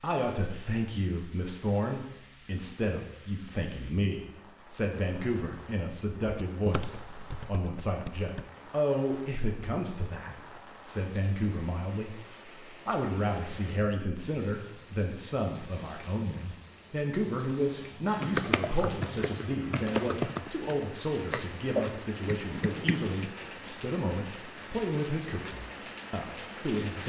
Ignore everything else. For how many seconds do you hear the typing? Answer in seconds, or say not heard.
7 s.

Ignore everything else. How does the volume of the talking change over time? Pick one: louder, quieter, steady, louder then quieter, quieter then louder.
steady.